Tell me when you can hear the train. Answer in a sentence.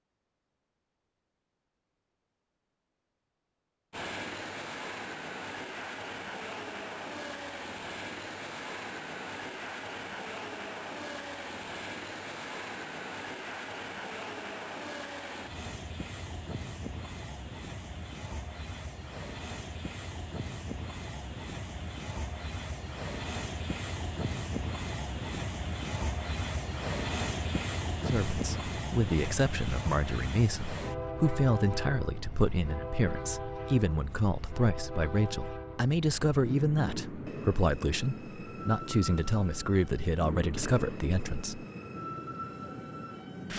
You can hear the train from 3.9 to 43.5 s.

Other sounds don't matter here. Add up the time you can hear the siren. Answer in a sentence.
The siren can't be heard in this clip.